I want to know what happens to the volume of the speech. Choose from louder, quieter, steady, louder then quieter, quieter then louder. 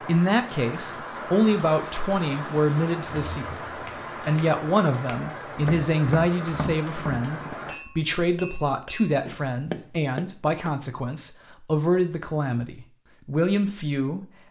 steady.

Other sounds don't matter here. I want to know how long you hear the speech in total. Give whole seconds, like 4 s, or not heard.
14 s.